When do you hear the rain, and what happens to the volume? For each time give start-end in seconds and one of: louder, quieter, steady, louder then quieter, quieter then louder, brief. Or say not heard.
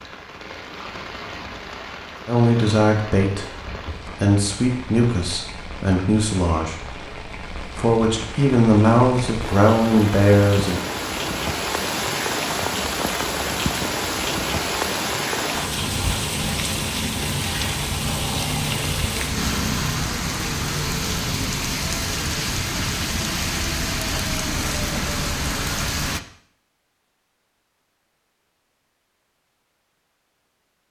0.0-26.2 louder.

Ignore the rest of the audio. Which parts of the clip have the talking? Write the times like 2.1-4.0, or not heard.
2.2-3.5, 4.2-6.9, 7.8-10.8.